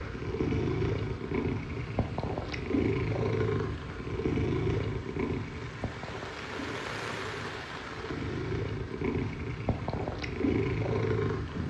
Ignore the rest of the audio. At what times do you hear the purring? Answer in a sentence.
The purring can be heard from 0.0 to 11.6 s.